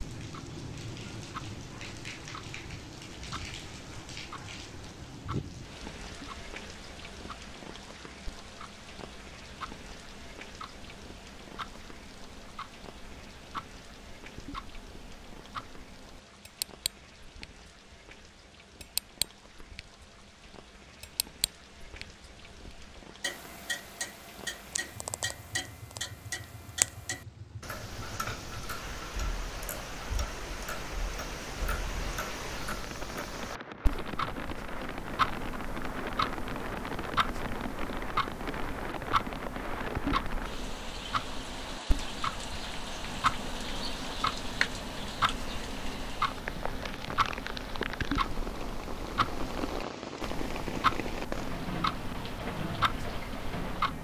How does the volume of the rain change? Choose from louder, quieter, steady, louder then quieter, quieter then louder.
quieter then louder.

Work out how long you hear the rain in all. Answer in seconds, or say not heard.
54 s.